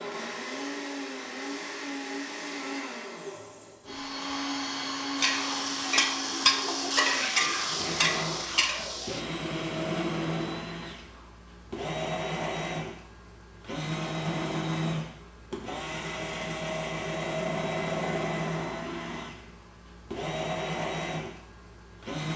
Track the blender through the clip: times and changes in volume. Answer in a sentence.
You can hear the blender from 0.0 to 22.3 s, at a steady volume.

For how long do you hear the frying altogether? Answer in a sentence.
The frying can be heard for 4 seconds in total.